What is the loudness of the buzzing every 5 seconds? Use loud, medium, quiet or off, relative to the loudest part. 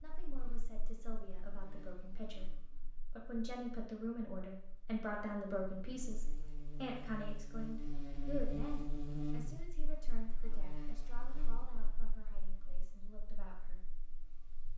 quiet, loud, quiet.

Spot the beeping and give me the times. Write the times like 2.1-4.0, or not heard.
not heard.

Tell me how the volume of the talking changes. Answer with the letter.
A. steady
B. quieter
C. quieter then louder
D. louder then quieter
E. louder
D.